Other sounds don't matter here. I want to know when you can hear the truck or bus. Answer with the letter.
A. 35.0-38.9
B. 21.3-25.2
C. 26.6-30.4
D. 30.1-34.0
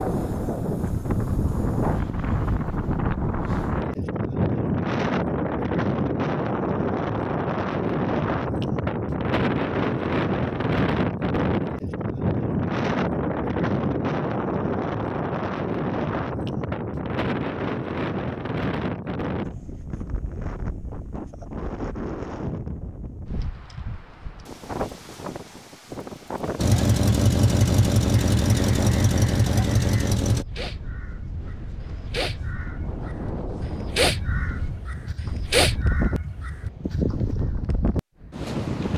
C.